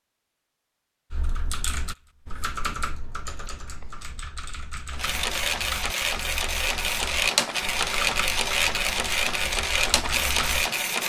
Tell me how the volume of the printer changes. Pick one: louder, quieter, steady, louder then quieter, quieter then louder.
steady.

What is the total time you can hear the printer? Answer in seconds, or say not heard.
6 s.